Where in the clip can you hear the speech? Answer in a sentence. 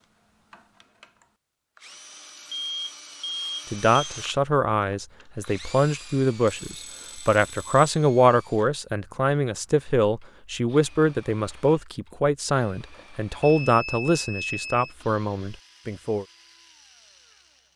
You can hear the speech from 3.7 to 16.2 s.